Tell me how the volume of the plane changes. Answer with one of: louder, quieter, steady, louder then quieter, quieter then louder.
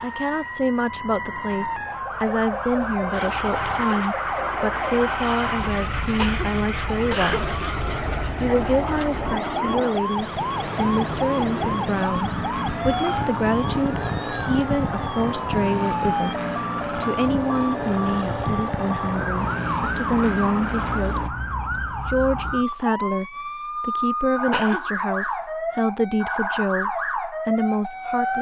steady.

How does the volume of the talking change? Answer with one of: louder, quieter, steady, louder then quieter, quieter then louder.
steady.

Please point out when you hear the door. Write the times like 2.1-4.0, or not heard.
not heard.